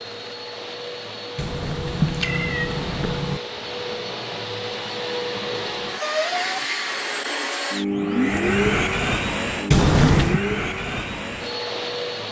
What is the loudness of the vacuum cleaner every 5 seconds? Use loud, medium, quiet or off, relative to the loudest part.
medium, loud, loud.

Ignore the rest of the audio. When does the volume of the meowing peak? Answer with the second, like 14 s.
10 s.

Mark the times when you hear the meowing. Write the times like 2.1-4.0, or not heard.
1.4-3.4, 9.7-10.4.